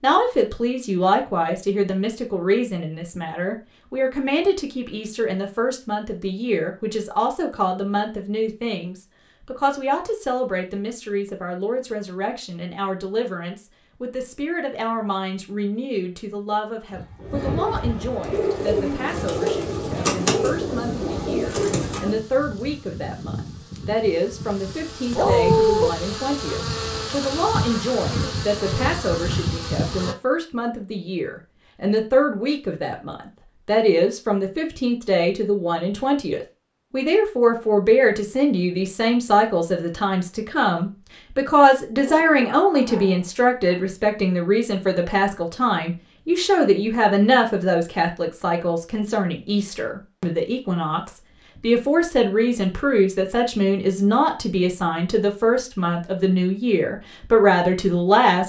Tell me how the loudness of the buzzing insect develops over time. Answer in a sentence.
The volume of the buzzing insect goes up.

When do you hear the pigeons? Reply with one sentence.
You can hear the pigeons from 16.9 to 22.1 s.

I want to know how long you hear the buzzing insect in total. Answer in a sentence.
The buzzing insect can be heard for 12 seconds in total.